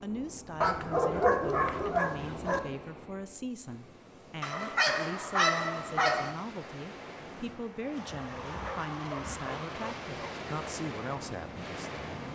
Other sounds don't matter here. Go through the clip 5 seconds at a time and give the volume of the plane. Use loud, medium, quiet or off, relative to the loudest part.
off, loud, loud.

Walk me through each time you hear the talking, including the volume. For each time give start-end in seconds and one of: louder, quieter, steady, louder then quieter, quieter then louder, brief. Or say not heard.
0.0-12.2 steady.